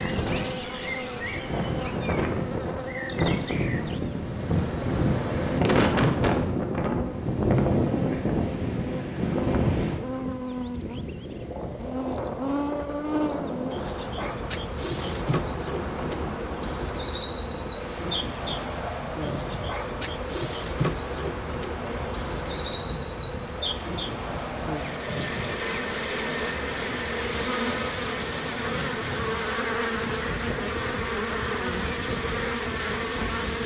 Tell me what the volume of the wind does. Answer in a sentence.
The volume of the wind goes down.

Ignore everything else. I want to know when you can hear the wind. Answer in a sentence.
You can hear the wind from 0.0 to 33.6 s.